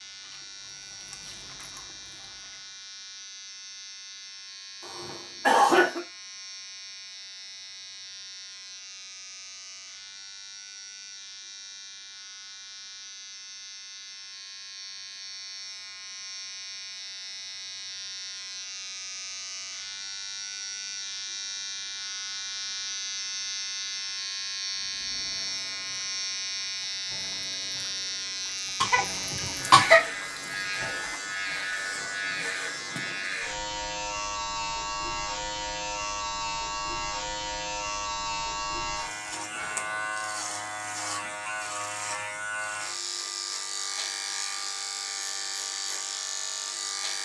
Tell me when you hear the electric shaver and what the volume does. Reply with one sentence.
You can hear the electric shaver from 0.0 to 47.2 s, getting louder.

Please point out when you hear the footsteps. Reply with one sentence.
The footsteps can't be heard in this clip.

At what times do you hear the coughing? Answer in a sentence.
You can hear the coughing from 4.8 to 6.0 s and from 28.8 to 30.1 s.